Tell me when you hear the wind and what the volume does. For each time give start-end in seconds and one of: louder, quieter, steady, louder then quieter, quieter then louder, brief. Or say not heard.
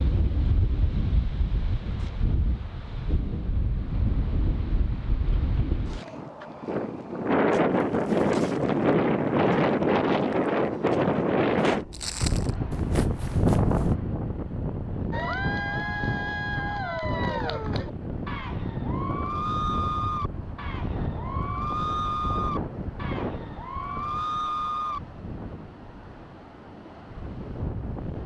0.0-28.2 louder then quieter.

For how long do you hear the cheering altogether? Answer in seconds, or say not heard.
10 s.